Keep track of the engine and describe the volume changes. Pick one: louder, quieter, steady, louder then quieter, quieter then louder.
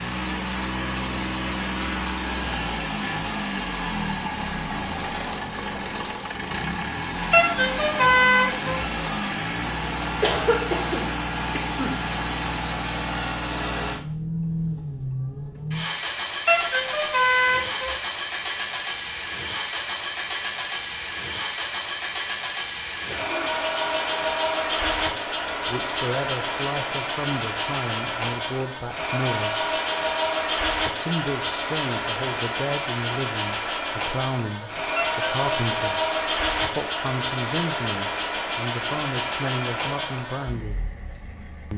steady.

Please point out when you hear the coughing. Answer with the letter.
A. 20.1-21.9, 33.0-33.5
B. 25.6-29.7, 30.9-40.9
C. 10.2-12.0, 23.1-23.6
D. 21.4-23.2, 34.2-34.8
C.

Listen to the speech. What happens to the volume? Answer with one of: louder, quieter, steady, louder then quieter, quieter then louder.
steady.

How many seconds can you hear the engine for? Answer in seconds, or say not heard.
42 s.